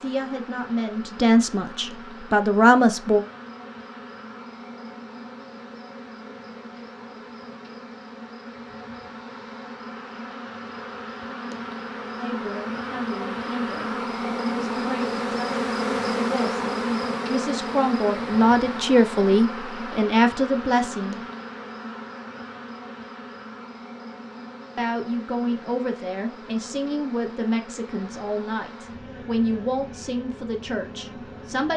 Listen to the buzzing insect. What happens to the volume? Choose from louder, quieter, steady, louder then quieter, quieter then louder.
louder then quieter.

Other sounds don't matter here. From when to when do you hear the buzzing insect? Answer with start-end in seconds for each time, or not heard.
0.0-31.7.